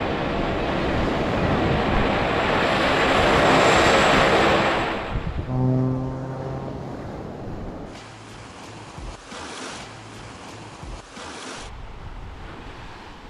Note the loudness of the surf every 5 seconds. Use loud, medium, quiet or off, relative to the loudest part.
loud, medium, quiet.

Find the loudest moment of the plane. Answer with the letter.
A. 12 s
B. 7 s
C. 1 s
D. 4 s
D.